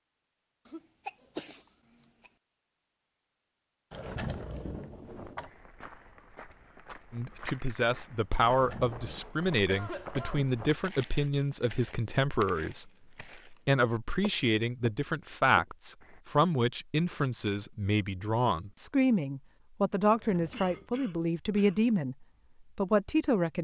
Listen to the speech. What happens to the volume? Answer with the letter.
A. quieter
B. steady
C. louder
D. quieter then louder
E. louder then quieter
B.